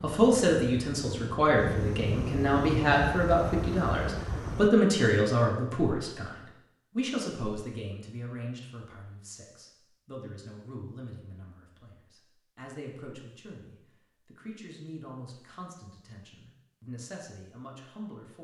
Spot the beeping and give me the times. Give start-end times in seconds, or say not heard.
not heard.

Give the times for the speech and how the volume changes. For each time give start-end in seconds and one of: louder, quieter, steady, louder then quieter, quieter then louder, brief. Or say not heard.
0.0-18.4 quieter.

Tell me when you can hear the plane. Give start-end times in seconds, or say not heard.
0.0-4.7.